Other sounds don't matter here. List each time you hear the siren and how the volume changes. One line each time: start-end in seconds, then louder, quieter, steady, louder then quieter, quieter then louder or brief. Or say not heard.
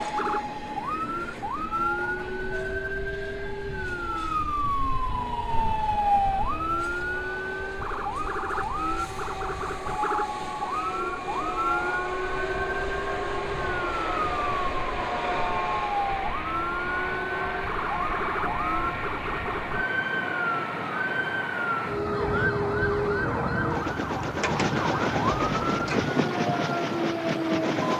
0.0-27.9 steady.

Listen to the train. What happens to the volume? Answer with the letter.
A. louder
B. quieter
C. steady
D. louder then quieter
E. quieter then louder
A.